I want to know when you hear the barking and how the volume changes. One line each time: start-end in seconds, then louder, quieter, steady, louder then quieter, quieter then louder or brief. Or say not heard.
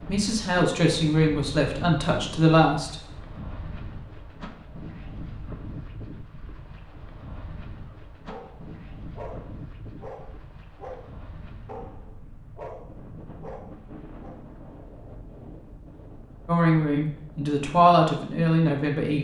8.1-14.4 steady.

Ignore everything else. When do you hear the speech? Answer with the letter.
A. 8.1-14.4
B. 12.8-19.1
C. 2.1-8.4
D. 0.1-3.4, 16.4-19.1
D.